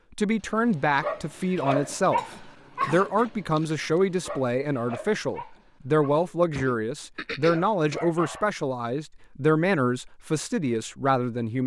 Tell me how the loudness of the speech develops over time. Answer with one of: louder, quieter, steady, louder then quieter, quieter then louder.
steady.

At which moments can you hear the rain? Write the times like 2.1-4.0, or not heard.
not heard.